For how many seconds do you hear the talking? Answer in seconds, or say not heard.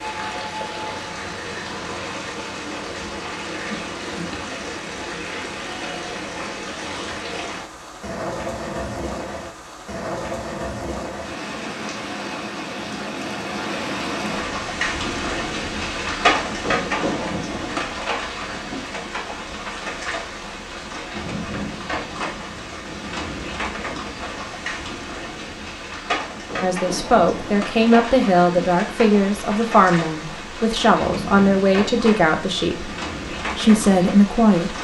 8 s.